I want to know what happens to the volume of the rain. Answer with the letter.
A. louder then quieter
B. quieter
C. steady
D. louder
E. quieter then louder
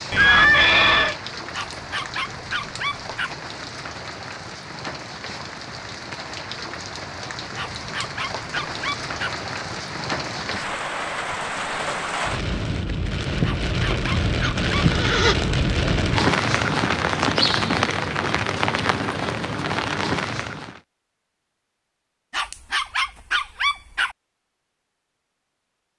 D.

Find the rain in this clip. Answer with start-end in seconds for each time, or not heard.
0.0-20.8.